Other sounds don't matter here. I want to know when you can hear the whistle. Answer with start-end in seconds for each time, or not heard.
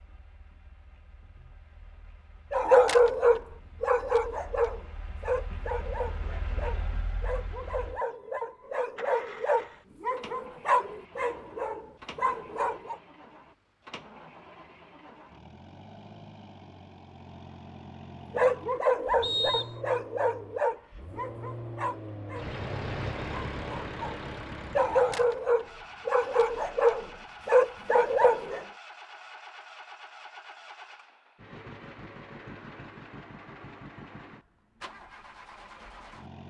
19.2-19.8.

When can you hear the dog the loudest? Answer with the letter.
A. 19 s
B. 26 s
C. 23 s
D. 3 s
D.